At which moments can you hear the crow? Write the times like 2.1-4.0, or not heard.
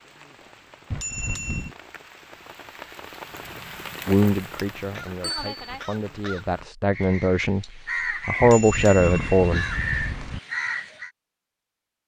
3.2-11.1.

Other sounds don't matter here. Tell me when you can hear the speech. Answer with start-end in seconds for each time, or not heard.
4.0-9.7.